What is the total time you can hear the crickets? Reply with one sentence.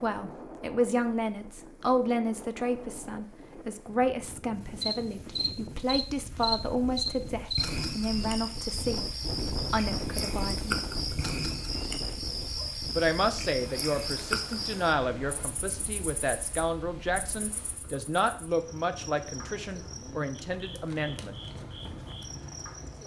You can hear the crickets for 18 seconds altogether.